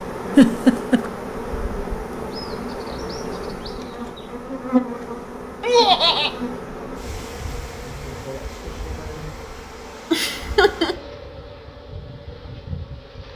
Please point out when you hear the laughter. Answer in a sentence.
The laughter can be heard from 0.3 to 1.1 s, from 5.6 to 6.3 s and from 10.1 to 10.9 s.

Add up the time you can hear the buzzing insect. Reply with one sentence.
You can hear the buzzing insect for 13 seconds altogether.